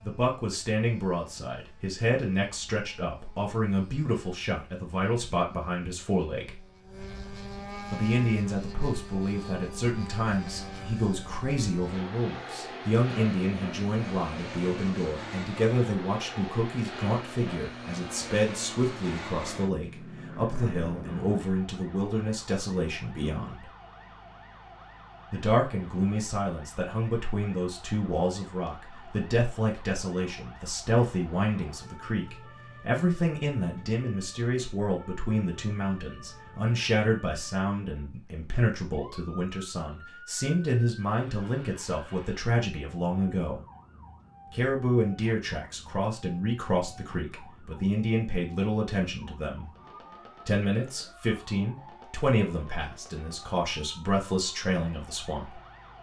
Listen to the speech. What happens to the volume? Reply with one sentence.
The volume of the speech stays about the same.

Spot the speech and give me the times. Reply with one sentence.
The speech can be heard from 0.0 to 6.6 s, from 7.9 to 23.6 s, from 25.3 to 43.6 s, from 44.5 to 49.7 s and from 50.5 to 55.5 s.